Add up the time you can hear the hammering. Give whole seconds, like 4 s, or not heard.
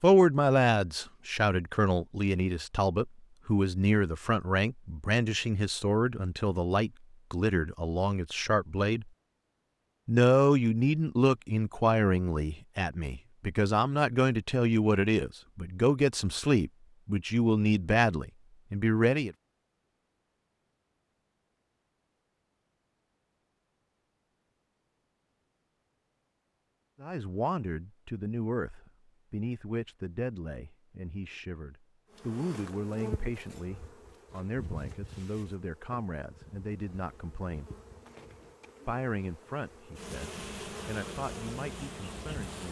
not heard.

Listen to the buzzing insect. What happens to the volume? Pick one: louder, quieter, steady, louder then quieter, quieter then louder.
quieter then louder.